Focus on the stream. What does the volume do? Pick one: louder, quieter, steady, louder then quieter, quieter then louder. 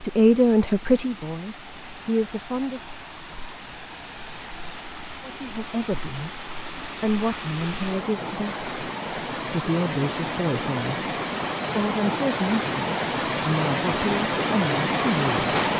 louder.